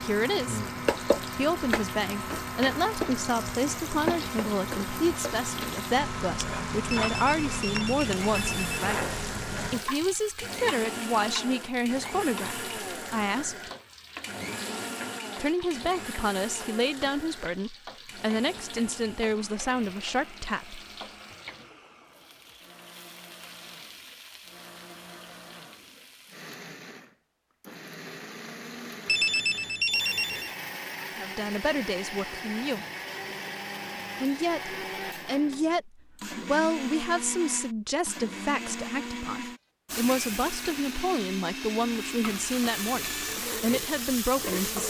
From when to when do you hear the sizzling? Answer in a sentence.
The sizzling can be heard from 0.0 to 26.5 s and from 39.9 to 44.8 s.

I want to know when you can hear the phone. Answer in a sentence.
You can hear the phone from 6.9 to 8.8 s and from 29.1 to 30.6 s.